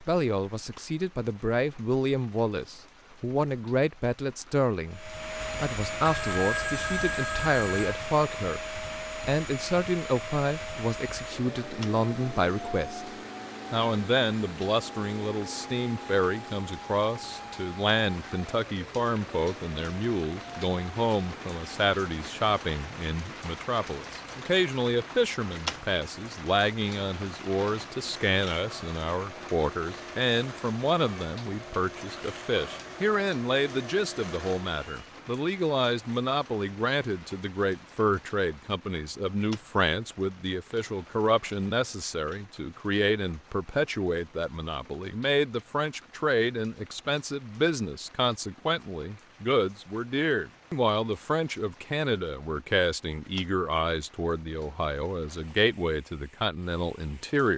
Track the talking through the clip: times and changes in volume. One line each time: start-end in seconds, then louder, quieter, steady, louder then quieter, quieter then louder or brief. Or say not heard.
0.0-13.1 steady
13.7-57.5 steady.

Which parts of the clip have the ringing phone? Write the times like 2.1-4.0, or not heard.
5.4-8.0.